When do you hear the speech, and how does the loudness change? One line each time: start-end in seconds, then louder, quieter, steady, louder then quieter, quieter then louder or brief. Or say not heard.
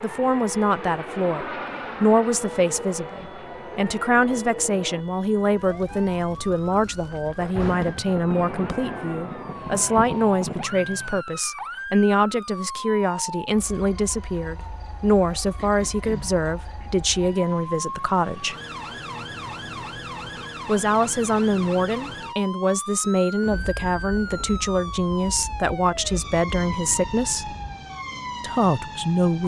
0.0-18.6 steady
20.6-27.6 steady
28.4-29.4 brief.